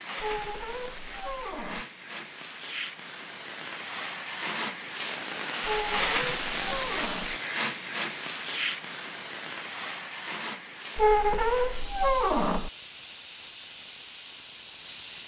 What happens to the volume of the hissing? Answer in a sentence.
The volume of the hissing goes up, then down.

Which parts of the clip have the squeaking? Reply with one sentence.
The squeaking can be heard from 0.2 to 1.9 s, from 5.6 to 7.4 s and from 10.9 to 12.7 s.